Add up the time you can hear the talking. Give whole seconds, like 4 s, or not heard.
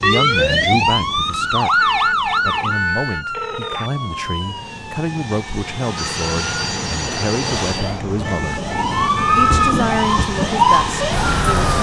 11 s.